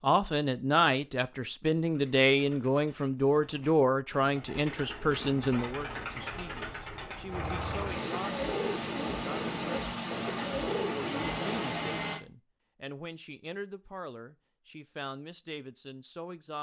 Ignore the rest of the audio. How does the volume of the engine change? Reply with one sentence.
The loudness of the engine goes up.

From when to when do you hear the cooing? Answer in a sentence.
The cooing can be heard from 1.8 to 11.8 s.